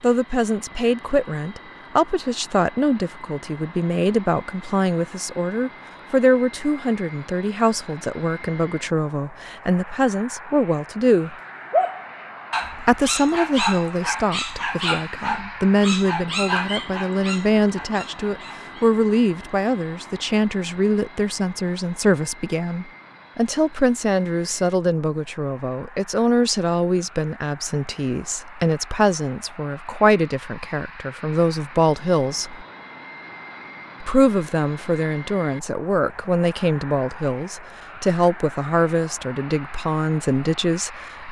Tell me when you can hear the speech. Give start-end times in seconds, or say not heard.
0.0-11.3, 12.8-32.6, 34.0-41.2.